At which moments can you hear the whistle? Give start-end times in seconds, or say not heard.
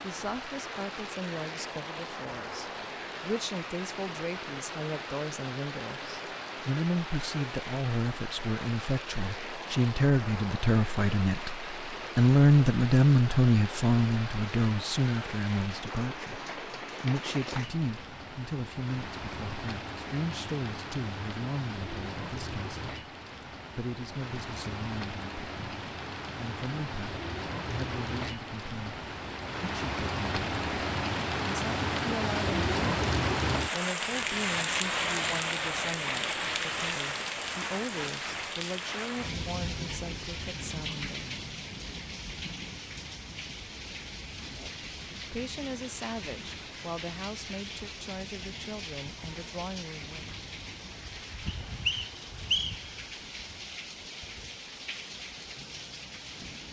51.5-52.9.